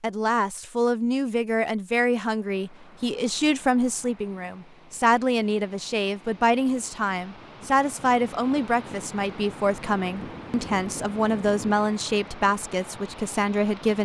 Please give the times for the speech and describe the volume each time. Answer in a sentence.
You can hear the speech from 0.0 to 13.9 s, at a steady volume.